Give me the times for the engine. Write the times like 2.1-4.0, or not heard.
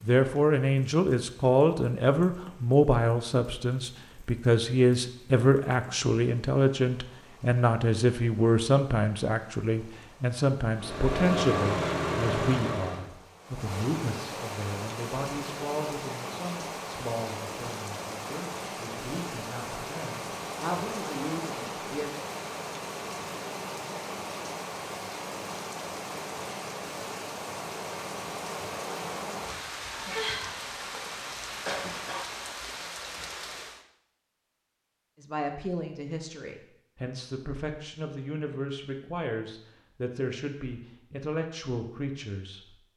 10.7-13.1.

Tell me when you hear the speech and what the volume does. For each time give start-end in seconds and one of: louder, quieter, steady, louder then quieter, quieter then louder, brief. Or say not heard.
0.0-22.1 quieter
35.1-42.8 steady.